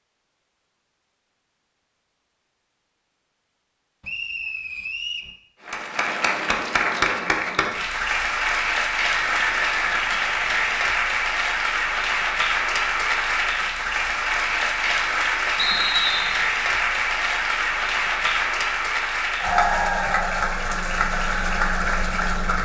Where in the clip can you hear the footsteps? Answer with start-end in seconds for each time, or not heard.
not heard.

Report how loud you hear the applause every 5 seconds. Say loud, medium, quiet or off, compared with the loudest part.
off, loud, loud, loud, loud.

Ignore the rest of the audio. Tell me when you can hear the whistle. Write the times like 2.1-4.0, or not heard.
4.0-5.3, 9.3-10.9, 15.6-16.4.